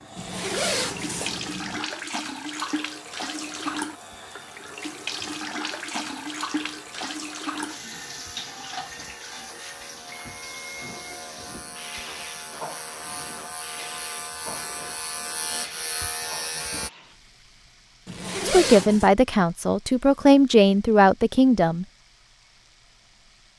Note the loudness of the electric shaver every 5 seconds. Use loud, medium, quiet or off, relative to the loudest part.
quiet, quiet, medium, loud, off.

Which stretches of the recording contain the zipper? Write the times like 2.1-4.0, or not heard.
0.1-1.9, 18.1-19.1.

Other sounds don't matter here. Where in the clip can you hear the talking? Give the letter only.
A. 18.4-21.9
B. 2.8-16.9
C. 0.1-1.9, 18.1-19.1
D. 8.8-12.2
A.